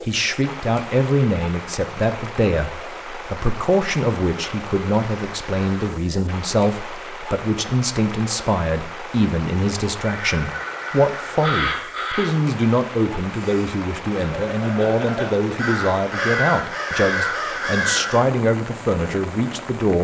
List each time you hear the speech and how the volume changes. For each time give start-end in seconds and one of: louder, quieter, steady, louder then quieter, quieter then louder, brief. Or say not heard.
0.1-19.9 steady.